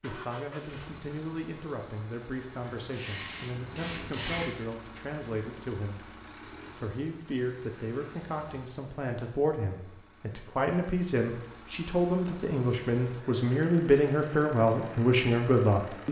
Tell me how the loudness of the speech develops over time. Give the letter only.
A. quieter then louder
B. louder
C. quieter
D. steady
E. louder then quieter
B.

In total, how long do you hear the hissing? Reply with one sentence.
The hissing can be heard for 2 seconds in total.